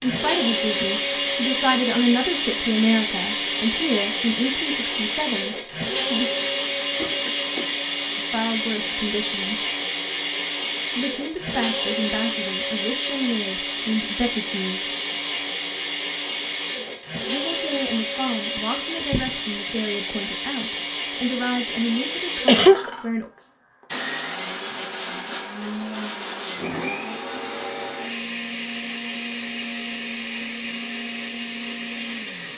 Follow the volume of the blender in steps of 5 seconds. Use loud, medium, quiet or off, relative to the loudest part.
loud, loud, loud, loud, medium, medium, medium.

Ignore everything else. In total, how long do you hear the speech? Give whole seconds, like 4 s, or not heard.
18 s.